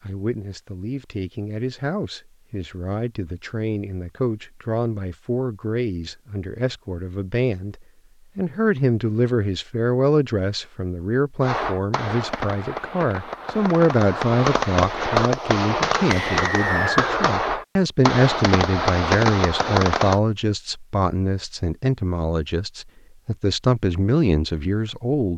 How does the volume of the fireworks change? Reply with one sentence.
The loudness of the fireworks goes up.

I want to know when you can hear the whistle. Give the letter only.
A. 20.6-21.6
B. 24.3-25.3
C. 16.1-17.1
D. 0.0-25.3
C.